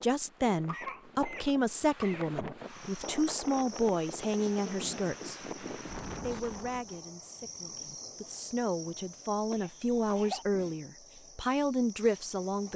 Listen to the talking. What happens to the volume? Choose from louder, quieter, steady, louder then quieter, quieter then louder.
quieter then louder.